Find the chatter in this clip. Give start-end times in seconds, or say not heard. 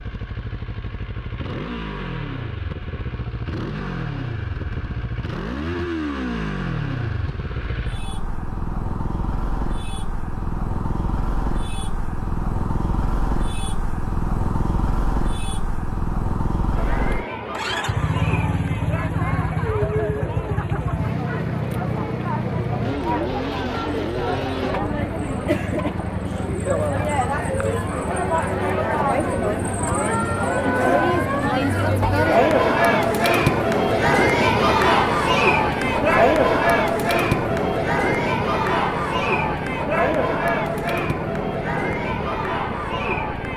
16.7-43.5.